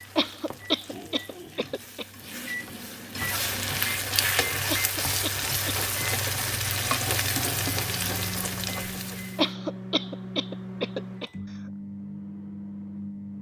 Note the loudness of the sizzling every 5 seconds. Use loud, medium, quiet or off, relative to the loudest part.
loud, loud, off.